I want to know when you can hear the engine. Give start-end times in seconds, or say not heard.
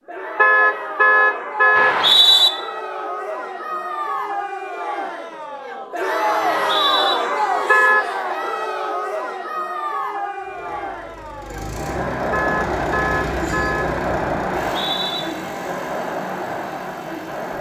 10.3-17.5.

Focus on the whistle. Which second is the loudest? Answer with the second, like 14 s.
2 s.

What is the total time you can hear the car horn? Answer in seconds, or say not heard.
4 s.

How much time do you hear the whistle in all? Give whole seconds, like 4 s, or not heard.
2 s.